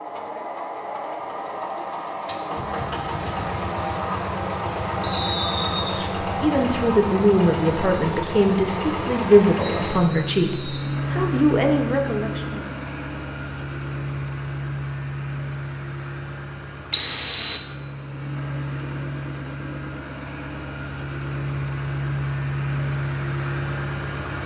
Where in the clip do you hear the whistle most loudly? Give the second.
17 s.